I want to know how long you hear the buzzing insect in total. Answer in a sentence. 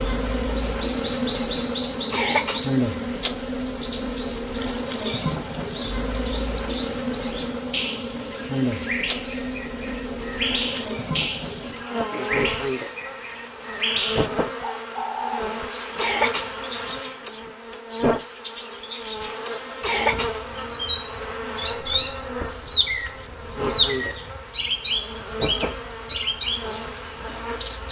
You can hear the buzzing insect for 28 seconds altogether.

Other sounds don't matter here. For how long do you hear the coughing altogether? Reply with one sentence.
You can hear the coughing for 3 seconds altogether.